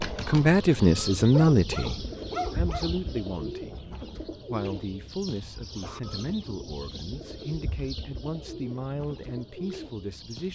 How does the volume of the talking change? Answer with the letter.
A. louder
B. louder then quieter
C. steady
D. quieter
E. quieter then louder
D.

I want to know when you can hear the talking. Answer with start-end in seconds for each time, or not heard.
0.1-10.5.